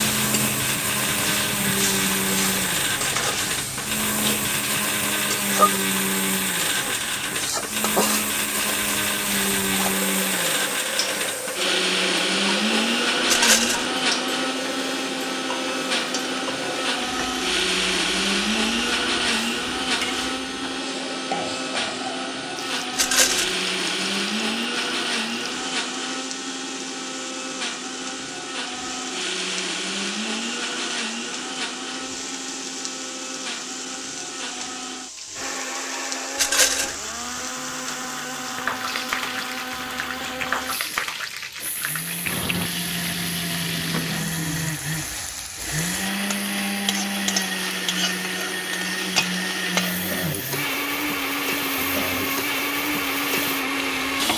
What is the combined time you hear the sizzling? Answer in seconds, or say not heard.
54 s.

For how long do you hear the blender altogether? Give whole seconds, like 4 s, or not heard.
54 s.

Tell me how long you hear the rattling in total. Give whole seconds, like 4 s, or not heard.
2 s.